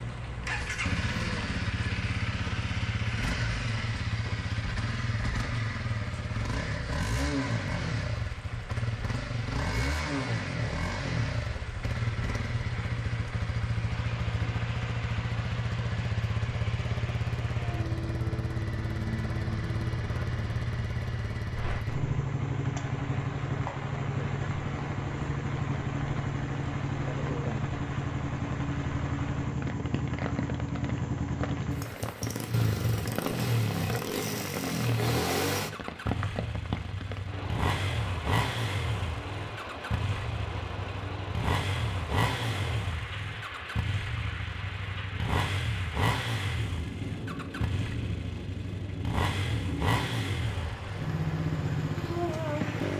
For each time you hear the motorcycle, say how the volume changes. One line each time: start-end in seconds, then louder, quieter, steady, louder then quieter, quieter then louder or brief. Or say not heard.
0.0-52.9 steady.